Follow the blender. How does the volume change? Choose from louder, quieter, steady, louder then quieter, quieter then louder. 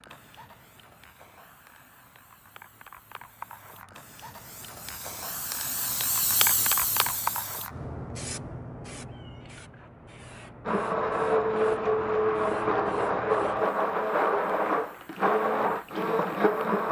steady.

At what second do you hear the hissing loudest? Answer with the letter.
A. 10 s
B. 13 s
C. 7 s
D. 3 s
C.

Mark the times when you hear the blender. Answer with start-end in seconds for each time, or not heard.
10.7-16.8.